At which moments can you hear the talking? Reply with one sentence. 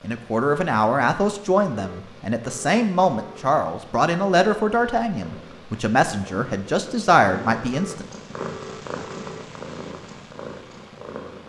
You can hear the talking from 0.0 to 8.1 s.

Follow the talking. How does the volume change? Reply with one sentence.
The loudness of the talking stays about the same.